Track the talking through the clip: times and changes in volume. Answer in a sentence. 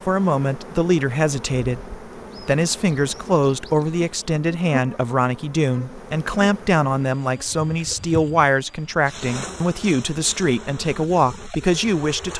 The talking can be heard from 0.1 to 12.3 s, at a steady volume.